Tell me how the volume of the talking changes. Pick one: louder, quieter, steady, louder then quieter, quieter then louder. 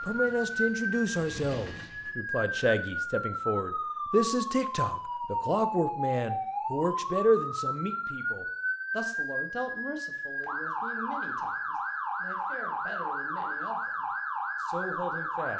quieter.